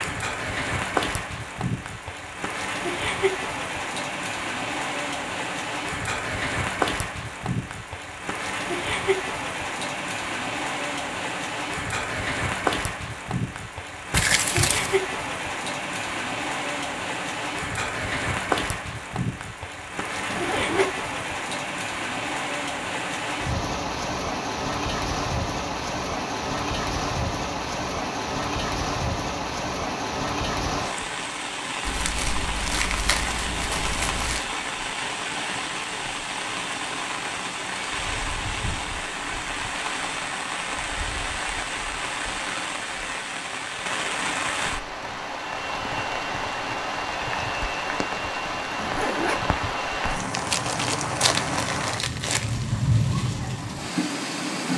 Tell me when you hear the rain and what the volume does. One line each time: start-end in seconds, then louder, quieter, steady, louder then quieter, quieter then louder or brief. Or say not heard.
0.0-54.7 steady.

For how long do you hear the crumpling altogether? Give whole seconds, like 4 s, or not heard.
6 s.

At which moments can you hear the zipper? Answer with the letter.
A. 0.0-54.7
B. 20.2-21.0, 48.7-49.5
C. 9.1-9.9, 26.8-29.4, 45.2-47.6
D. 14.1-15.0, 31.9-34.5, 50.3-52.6
B.